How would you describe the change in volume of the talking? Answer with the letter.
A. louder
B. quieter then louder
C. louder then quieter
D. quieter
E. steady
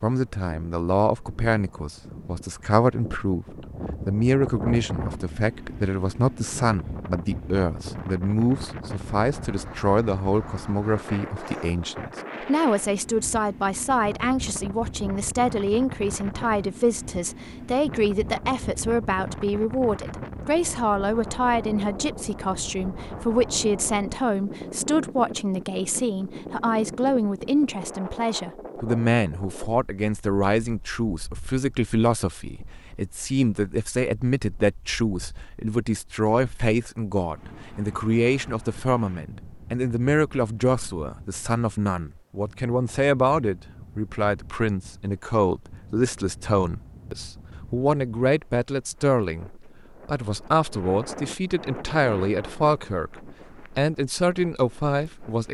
E.